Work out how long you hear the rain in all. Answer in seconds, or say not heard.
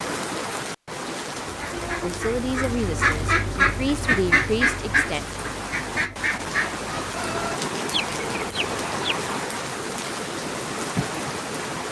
12 s.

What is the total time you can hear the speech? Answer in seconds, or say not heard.
3 s.